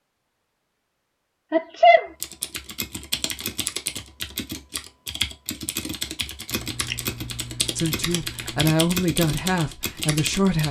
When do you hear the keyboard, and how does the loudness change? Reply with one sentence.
The keyboard can be heard from 2.2 to 10.6 s, at a steady volume.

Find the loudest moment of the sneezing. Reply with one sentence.
The volume of the sneezing peaks at 2 seconds.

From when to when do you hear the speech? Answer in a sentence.
You can hear the speech from 7.8 to 10.6 s.